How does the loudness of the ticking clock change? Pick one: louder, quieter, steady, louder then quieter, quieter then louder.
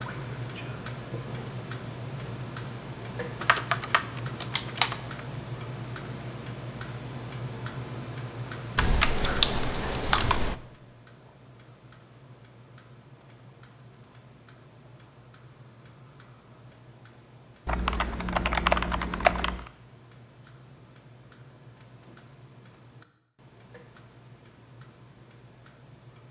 quieter.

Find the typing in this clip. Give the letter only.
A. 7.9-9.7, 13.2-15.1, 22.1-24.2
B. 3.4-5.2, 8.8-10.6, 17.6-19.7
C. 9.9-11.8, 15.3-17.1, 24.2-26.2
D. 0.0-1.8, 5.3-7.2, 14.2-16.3
B.